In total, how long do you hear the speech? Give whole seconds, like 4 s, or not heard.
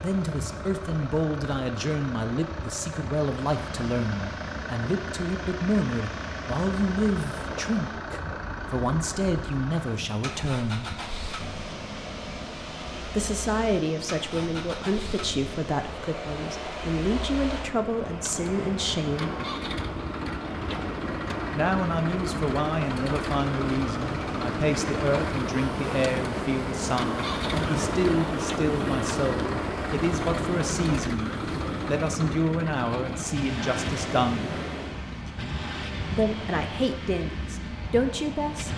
33 s.